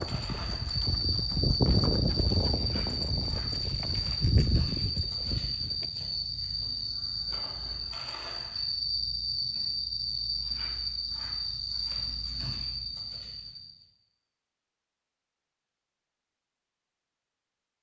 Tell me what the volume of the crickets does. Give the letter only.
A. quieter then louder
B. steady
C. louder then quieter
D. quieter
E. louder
B.